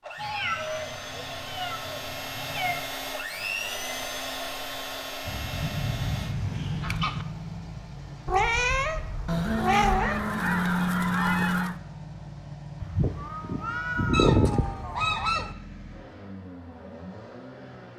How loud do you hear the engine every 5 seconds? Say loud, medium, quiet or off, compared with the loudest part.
loud, loud, medium, medium.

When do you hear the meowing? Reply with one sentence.
The meowing can be heard from 0.1 to 2.8 s, from 8.2 to 10.2 s and from 12.8 to 15.2 s.